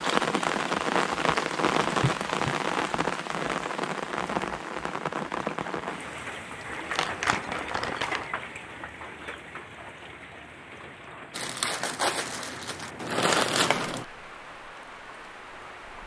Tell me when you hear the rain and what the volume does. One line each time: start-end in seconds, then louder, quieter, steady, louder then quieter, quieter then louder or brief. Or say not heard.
0.0-16.0 quieter.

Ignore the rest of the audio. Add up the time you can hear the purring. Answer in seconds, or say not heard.
not heard.